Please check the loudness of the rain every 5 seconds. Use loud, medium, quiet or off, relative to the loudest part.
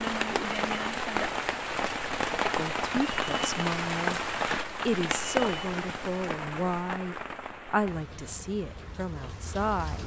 loud, medium.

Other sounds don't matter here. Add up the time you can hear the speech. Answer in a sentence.
You can hear the speech for 7 seconds altogether.